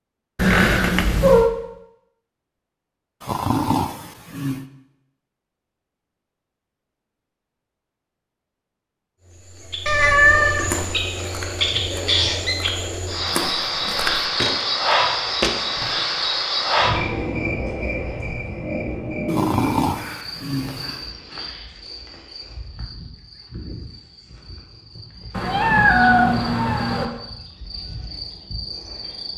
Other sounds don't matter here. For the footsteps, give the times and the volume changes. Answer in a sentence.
You can hear the footsteps from 10.6 to 16.0 s, getting louder.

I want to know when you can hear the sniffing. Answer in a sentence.
You can hear the sniffing from 3.2 to 4.7 s and from 19.2 to 21.0 s.